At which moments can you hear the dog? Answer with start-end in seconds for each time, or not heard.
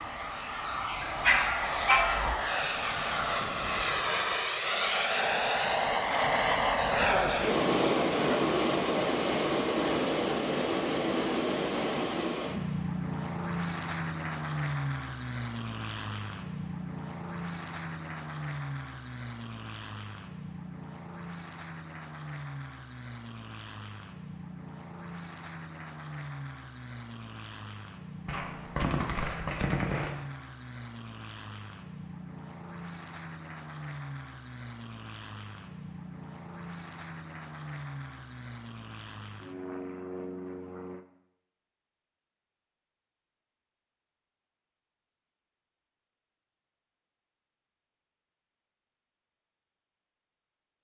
1.0-2.4.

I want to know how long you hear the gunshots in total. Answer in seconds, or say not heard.
2 s.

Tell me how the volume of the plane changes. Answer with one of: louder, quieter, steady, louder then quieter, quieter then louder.
quieter.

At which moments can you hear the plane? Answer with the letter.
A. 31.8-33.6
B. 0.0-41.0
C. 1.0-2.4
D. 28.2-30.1
B.